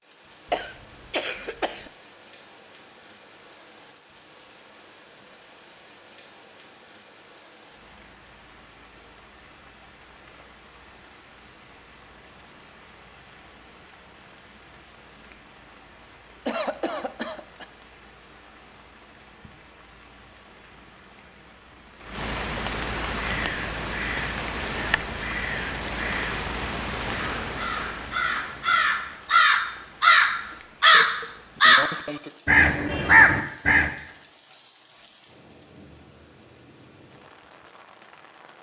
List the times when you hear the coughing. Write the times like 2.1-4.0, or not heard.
0.5-1.9, 16.4-17.6, 30.5-32.3.